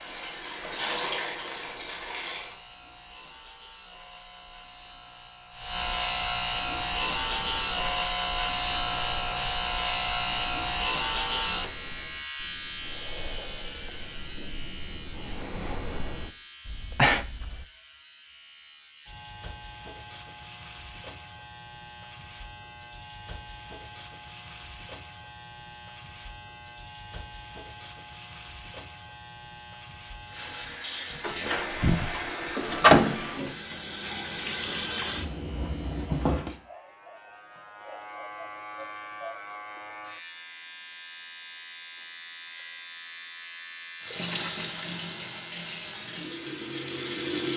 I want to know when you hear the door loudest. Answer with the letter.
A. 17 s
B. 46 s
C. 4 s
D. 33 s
D.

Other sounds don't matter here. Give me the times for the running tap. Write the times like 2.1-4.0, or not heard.
0.0-2.6, 30.2-36.5, 44.0-47.5.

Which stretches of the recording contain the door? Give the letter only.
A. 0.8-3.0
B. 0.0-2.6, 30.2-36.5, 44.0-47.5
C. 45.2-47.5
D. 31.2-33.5
D.